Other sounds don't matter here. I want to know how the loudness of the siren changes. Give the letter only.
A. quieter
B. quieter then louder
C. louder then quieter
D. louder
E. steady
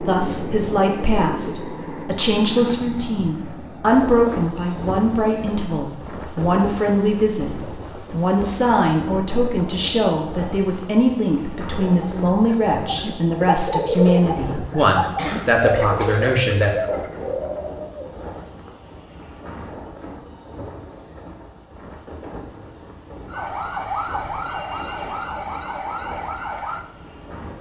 E.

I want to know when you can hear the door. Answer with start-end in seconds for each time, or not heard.
not heard.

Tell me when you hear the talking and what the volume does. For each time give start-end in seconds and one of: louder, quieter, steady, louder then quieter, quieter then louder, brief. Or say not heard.
0.0-16.8 steady.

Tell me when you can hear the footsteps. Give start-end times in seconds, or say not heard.
not heard.